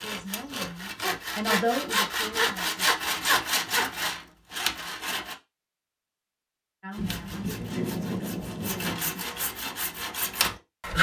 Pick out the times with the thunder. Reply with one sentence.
You can hear the thunder from 7.0 to 9.0 s.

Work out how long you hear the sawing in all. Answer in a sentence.
You can hear the sawing for 9 seconds altogether.